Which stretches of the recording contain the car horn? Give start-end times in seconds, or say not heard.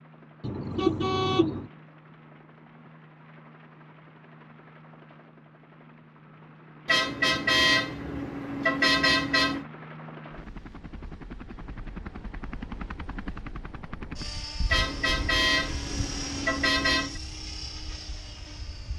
0.4-1.7, 6.8-9.7, 14.7-17.2.